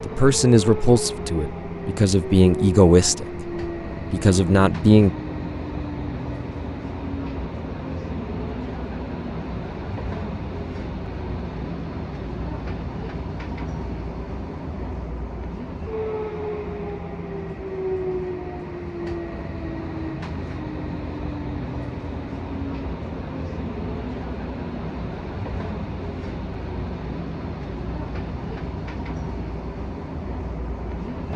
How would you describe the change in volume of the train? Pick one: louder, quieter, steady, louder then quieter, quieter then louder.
steady.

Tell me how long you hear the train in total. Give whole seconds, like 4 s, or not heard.
31 s.